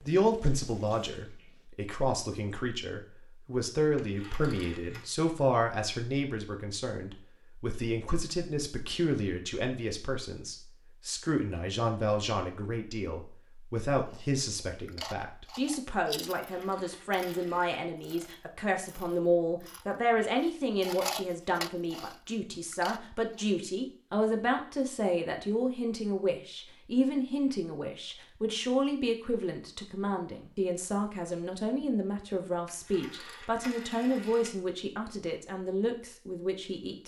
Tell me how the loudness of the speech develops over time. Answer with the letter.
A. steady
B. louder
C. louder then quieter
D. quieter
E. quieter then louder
A.